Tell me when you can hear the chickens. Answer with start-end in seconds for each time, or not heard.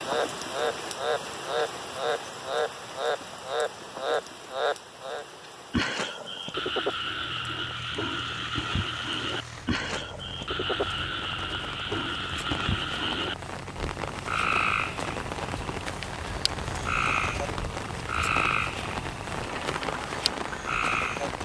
not heard.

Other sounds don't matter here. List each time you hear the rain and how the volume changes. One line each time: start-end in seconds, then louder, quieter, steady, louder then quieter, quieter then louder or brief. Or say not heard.
0.0-21.4 quieter then louder.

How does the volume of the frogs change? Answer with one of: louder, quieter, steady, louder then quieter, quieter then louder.
steady.